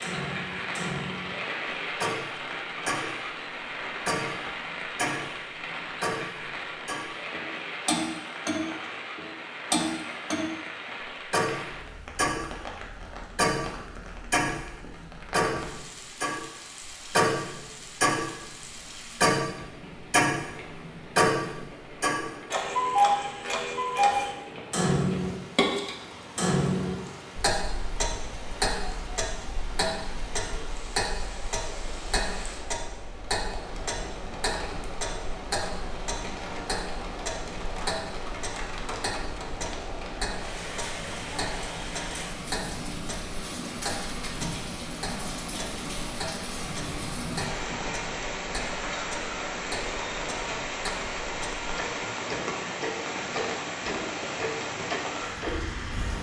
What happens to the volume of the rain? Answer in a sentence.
The loudness of the rain goes down, then up.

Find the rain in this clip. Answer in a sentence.
You can hear the rain from 0.0 to 56.1 s.